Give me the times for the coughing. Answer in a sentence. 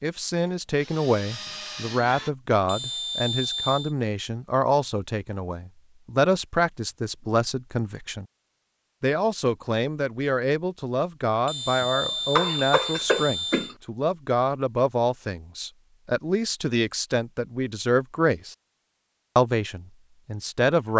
The coughing can be heard from 11.9 to 13.8 s.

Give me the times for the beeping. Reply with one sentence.
You can hear the beeping from 2.5 to 4.0 s and from 11.3 to 13.8 s.